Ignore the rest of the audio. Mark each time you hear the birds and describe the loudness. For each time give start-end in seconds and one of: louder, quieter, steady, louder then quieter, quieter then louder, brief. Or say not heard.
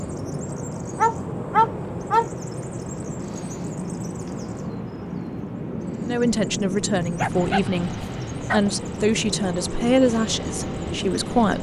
0.0-11.5 steady.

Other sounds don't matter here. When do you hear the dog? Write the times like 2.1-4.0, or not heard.
0.9-2.2, 7.0-8.6.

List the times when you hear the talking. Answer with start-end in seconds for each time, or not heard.
6.0-11.5.